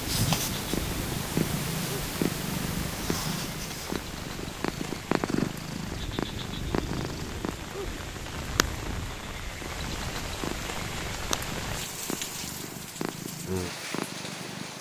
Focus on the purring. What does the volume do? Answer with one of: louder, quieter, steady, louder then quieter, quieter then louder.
quieter.